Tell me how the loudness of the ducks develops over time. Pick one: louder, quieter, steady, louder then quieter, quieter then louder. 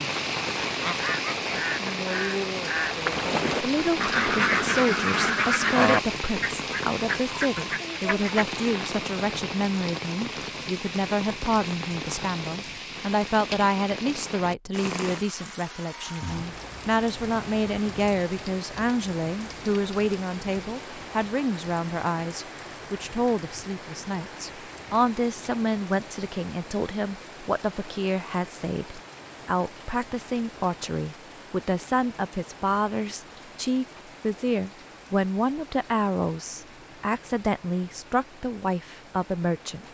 louder then quieter.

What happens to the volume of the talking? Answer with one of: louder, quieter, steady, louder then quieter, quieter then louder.
steady.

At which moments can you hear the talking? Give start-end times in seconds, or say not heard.
3.6-39.8.